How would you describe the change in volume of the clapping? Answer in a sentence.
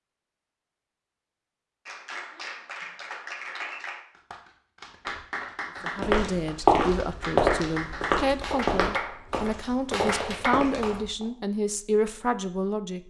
The volume of the clapping goes up.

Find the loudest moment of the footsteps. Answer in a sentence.
The volume of the footsteps peaks at 7 seconds.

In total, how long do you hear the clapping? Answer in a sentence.
You can hear the clapping for 9 seconds altogether.